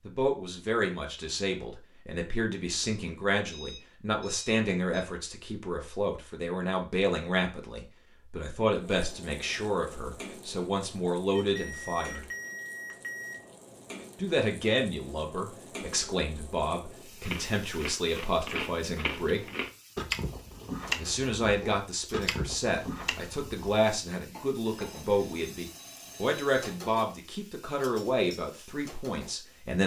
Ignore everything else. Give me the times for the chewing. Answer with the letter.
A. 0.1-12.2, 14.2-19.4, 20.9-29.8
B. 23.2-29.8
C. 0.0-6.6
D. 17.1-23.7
D.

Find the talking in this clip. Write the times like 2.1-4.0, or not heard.
0.1-12.2, 14.2-19.4, 20.9-29.8.